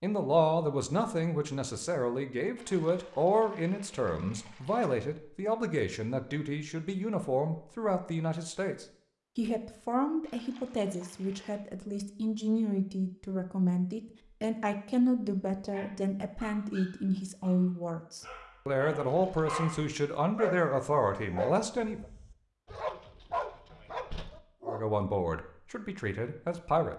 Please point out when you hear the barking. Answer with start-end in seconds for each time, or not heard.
15.7-24.9.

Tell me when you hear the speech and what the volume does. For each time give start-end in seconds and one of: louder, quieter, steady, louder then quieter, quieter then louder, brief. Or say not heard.
0.0-22.1 steady
24.6-26.9 brief.